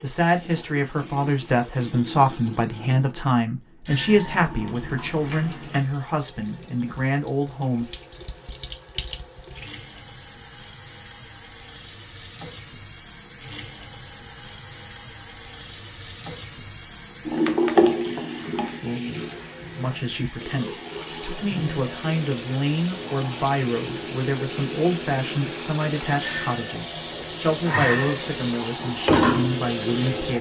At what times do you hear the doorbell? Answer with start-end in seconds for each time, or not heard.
3.9-4.3, 26.2-26.7.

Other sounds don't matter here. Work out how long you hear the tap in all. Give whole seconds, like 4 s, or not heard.
30 s.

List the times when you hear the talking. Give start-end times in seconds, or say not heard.
0.0-7.9, 19.7-30.3.